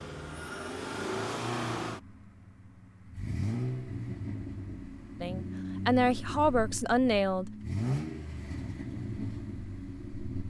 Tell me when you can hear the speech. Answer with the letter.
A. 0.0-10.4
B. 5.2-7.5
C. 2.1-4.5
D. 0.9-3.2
B.